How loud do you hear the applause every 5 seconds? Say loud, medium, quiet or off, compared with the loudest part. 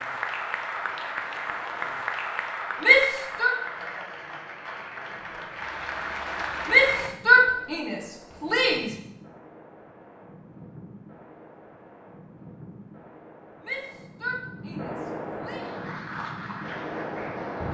loud, loud, off, medium.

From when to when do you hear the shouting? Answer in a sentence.
You can hear the shouting from 2.8 to 3.5 s, from 6.7 to 8.9 s and from 13.6 to 15.7 s.